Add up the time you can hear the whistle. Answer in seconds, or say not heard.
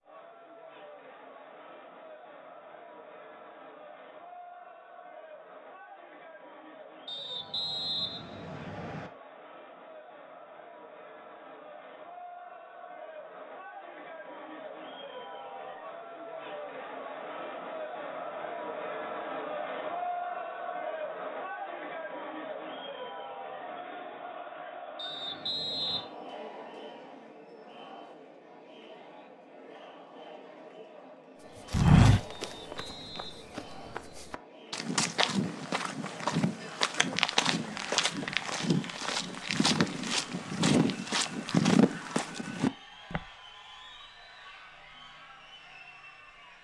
5 s.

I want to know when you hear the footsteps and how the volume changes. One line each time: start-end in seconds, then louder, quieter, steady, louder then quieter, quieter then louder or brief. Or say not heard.
31.7-43.2 louder.